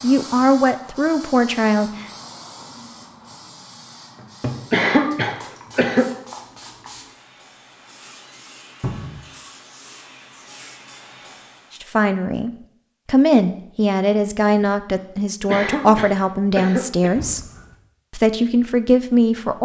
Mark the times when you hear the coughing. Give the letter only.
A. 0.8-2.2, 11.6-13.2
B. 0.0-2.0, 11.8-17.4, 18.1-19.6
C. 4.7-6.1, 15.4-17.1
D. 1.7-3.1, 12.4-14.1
C.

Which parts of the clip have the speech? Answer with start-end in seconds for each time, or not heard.
0.0-2.0, 11.8-17.4, 18.1-19.6.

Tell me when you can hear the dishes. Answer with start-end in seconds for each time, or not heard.
not heard.